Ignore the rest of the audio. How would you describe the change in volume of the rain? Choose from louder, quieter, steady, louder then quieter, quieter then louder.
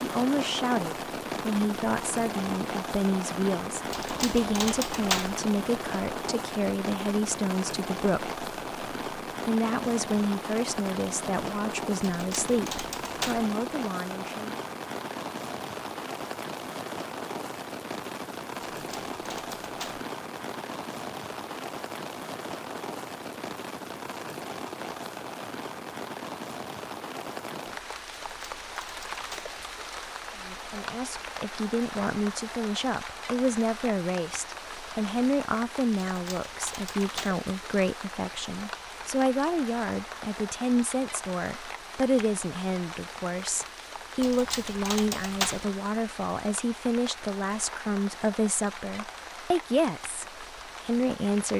quieter.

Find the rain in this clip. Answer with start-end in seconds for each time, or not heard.
0.0-51.5.